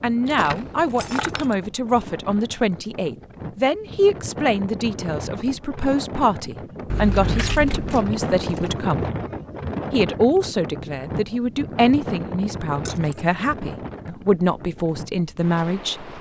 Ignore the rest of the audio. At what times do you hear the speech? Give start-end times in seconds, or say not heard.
0.0-9.1, 9.9-16.1.